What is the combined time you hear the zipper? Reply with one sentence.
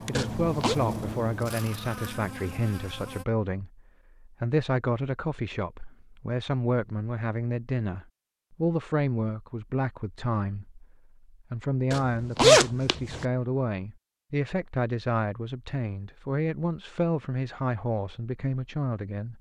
You can hear the zipper for 2 seconds altogether.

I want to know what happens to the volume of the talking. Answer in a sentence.
The loudness of the talking stays about the same.